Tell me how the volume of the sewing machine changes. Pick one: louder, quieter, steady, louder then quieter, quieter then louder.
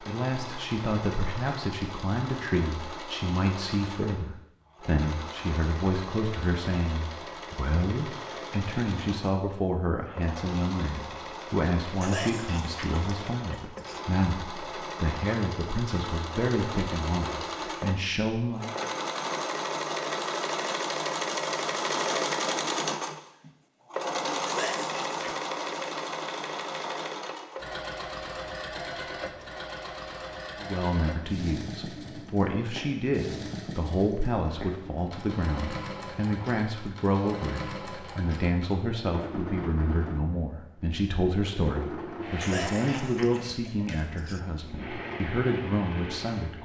louder then quieter.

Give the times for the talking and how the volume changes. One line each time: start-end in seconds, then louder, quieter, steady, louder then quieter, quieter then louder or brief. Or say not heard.
0.0-18.6 steady
30.6-46.6 steady.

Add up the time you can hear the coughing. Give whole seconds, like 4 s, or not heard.
5 s.